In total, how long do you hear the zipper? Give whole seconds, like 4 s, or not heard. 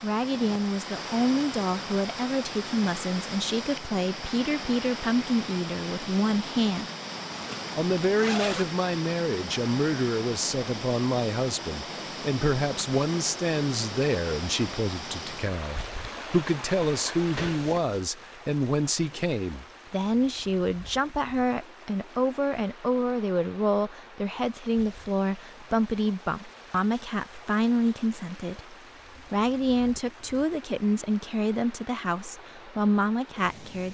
2 s.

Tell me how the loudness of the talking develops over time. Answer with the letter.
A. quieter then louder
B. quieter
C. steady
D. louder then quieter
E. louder
C.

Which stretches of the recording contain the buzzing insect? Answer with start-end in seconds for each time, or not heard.
not heard.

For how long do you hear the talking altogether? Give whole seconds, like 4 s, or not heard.
33 s.